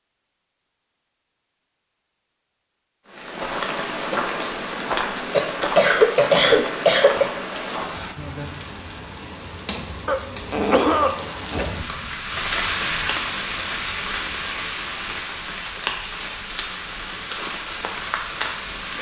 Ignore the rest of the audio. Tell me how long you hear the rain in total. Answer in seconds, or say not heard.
16 s.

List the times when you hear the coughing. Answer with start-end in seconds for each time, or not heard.
5.3-7.3, 10.1-11.7.